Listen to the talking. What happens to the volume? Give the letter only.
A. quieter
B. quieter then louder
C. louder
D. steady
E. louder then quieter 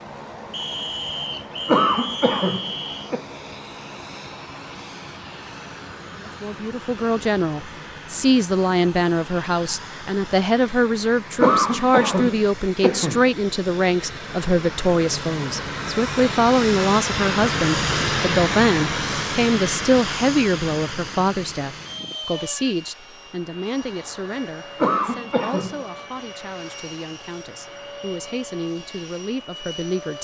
A.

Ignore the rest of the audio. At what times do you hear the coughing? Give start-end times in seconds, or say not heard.
1.6-3.2, 11.4-13.2, 24.8-25.9.